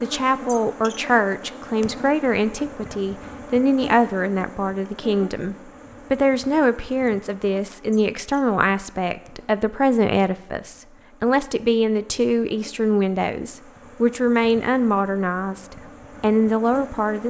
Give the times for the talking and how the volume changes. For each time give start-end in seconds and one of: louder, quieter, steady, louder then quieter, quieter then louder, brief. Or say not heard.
0.0-17.2 steady.